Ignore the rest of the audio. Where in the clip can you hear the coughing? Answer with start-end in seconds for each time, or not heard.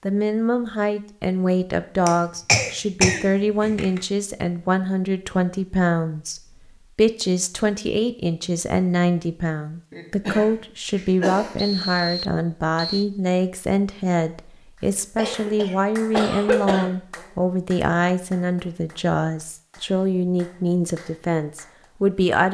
2.0-4.0, 9.9-11.8, 15.2-16.9.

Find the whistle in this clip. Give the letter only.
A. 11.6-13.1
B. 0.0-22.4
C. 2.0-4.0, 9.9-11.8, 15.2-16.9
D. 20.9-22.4
A.